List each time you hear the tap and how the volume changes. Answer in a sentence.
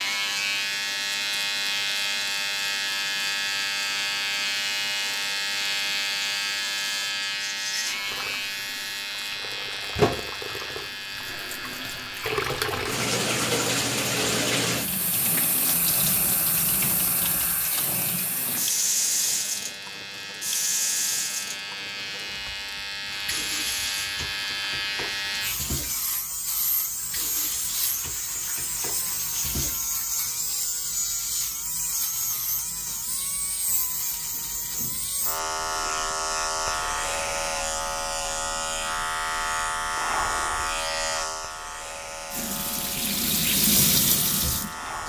The tap can be heard from 0.0 to 30.3 s, getting louder then quieter; and briefly from 42.3 to 45.0 s.